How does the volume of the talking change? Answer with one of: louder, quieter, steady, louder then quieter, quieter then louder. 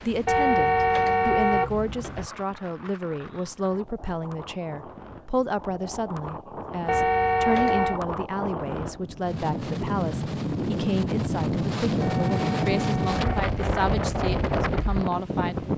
steady.